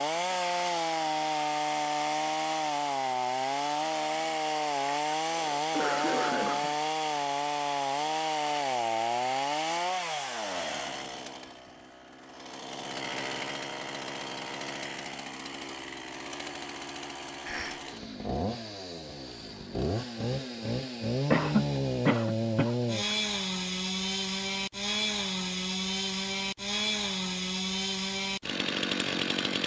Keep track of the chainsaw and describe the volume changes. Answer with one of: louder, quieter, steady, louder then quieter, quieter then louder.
quieter then louder.